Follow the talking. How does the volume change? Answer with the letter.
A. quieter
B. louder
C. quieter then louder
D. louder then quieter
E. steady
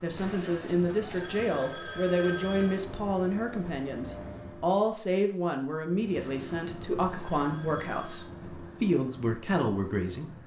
E.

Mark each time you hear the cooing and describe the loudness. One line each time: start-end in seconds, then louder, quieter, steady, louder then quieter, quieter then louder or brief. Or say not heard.
not heard.